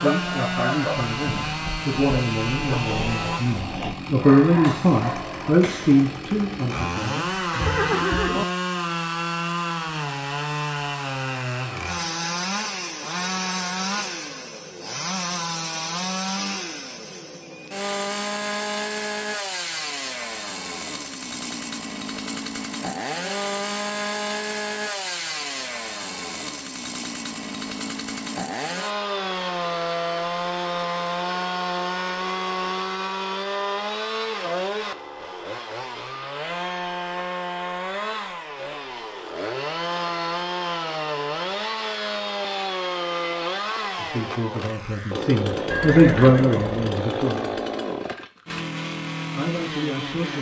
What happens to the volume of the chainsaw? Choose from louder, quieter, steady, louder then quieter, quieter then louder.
steady.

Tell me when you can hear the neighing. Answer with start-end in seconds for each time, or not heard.
7.3-8.4, 45.7-46.8.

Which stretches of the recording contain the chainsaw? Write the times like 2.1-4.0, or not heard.
0.0-50.3.